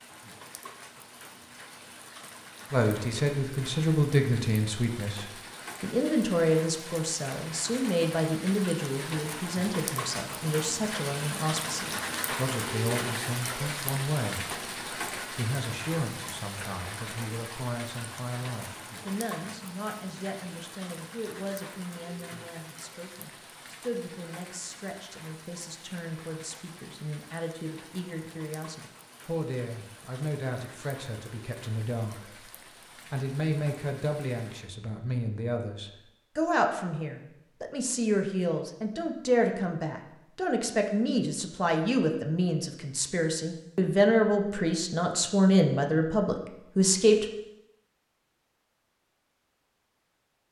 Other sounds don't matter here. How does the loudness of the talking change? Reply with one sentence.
The loudness of the talking goes down, then up.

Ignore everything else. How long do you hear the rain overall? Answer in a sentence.
You can hear the rain for 35 seconds altogether.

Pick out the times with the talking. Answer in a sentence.
The talking can be heard from 2.7 to 32.5 s and from 33.1 to 47.2 s.